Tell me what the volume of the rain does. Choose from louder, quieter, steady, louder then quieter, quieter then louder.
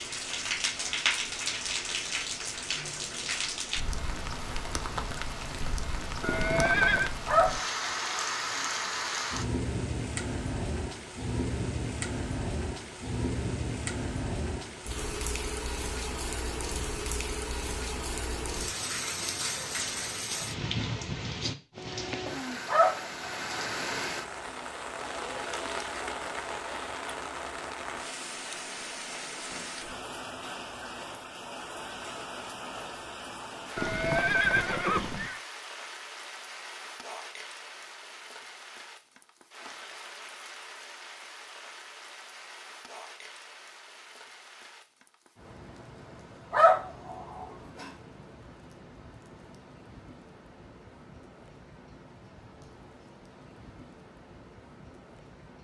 quieter.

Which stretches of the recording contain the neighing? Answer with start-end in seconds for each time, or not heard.
6.2-7.1, 33.8-35.4.